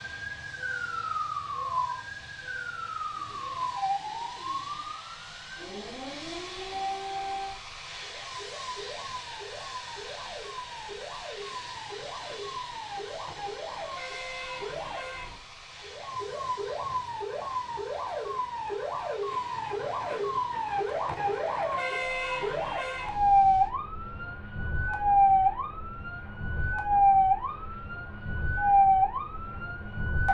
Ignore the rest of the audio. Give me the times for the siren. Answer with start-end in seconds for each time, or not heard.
0.0-30.2.